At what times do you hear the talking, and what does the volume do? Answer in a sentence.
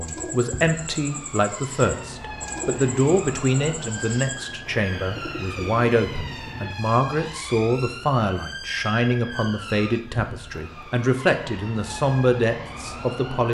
The talking can be heard from 0.0 to 13.4 s, at a steady volume.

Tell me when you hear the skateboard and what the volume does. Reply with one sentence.
You can't hear the skateboard here.